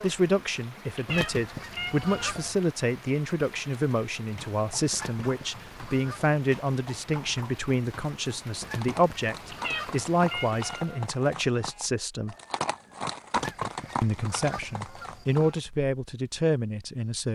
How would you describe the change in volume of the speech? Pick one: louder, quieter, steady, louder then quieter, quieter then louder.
steady.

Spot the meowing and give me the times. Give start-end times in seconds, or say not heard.
0.9-2.4, 9.5-11.1.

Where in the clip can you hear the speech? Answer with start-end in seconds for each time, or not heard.
0.0-12.3, 14.0-17.2.